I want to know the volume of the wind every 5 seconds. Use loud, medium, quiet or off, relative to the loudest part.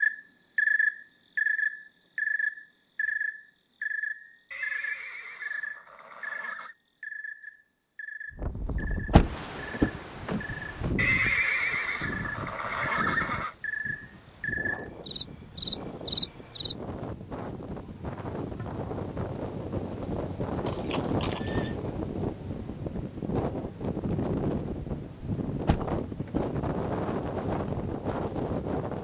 off, medium, medium, medium, loud, loud.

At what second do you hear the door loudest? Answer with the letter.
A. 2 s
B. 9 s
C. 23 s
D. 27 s
B.